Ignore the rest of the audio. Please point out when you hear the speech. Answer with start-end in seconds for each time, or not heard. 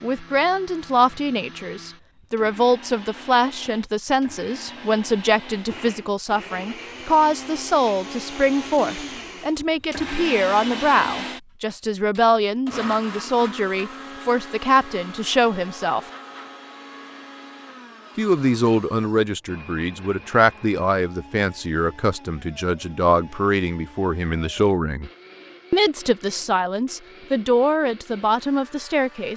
0.0-16.0, 18.1-25.1, 25.7-29.3.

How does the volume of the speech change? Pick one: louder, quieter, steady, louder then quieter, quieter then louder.
steady.